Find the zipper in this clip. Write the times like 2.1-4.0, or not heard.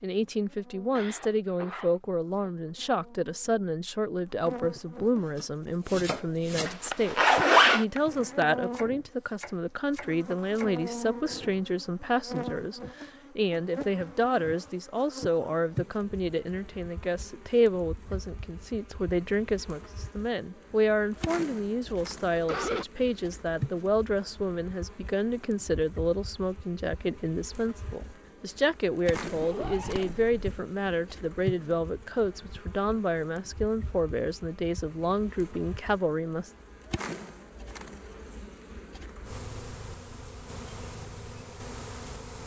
6.7-7.8, 29.2-30.6.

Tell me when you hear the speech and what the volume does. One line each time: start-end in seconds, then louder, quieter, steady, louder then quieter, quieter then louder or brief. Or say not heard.
0.0-36.5 steady.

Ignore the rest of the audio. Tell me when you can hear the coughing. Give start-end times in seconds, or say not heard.
0.9-1.9, 21.9-22.9.